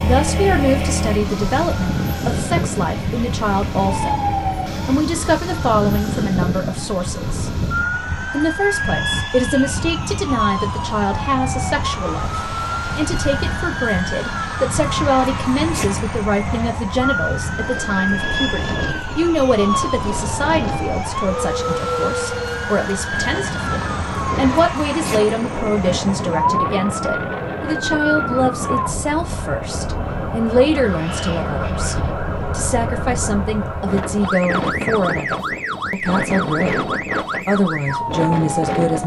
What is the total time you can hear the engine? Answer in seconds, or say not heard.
5 s.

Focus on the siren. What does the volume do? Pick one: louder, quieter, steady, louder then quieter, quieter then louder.
steady.